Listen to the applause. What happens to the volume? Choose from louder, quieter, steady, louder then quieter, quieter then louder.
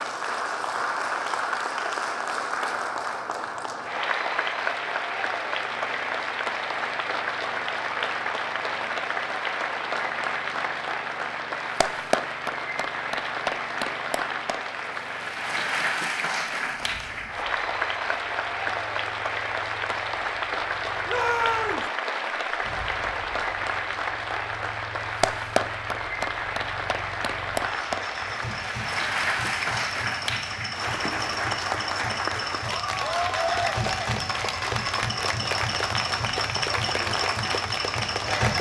steady.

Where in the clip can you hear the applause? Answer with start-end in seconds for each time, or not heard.
0.0-38.5.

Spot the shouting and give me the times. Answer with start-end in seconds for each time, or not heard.
21.1-21.9.